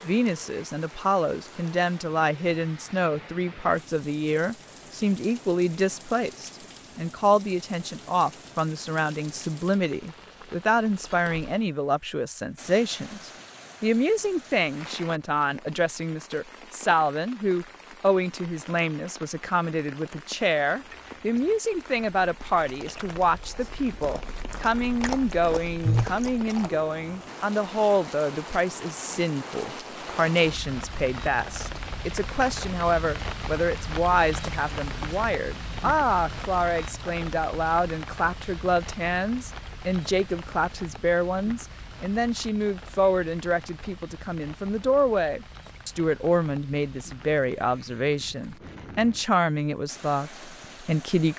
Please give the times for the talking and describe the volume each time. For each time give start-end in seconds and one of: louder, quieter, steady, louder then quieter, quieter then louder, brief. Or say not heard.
0.0-51.3 steady.